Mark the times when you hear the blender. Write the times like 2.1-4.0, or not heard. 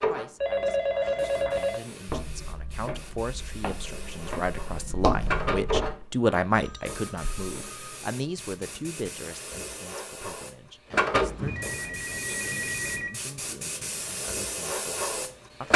not heard.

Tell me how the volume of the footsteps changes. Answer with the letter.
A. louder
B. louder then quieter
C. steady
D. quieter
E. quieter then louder
E.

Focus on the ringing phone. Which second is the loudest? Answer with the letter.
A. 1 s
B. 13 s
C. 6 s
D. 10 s
A.